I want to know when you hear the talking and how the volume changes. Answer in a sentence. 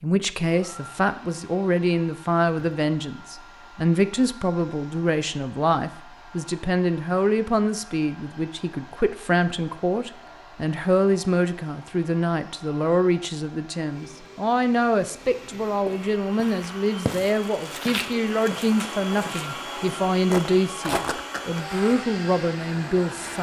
The talking can be heard from 0.0 to 23.3 s, at a steady volume.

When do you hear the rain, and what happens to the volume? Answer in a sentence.
You can't hear the rain here.